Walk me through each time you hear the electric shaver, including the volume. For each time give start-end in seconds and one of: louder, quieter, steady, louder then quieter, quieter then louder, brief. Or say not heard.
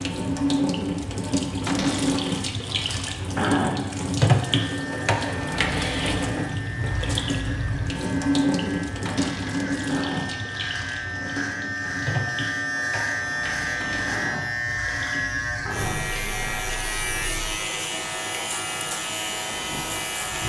4.4-20.4 louder.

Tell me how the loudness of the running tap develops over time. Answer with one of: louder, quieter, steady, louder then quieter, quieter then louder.
quieter.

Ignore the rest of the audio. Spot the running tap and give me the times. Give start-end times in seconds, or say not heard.
0.0-20.4.